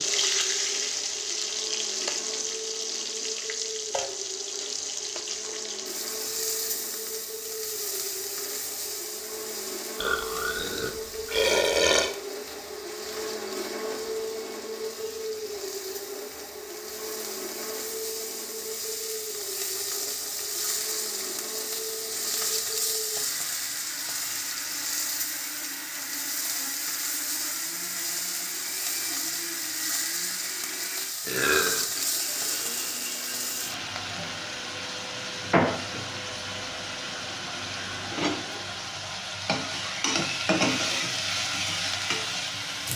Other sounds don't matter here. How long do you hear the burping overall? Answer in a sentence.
The burping can be heard for 3 seconds in total.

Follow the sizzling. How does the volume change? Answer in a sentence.
The loudness of the sizzling goes down, then up.